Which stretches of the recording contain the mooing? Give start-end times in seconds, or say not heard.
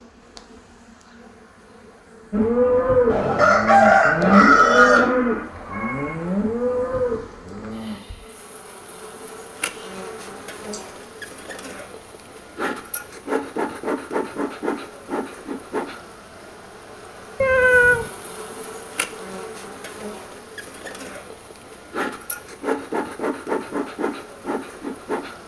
2.3-8.2.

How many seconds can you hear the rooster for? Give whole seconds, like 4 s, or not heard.
2 s.